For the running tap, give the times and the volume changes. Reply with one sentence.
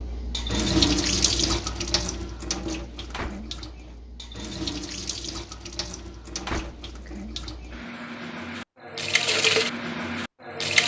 The running tap can be heard from 0.0 to 10.8 s, getting quieter then louder.